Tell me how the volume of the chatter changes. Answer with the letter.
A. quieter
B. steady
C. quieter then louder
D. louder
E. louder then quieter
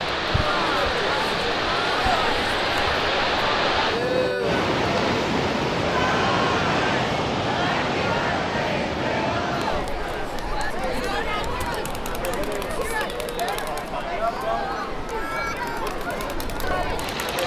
B.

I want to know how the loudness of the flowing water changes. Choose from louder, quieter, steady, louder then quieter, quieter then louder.
quieter.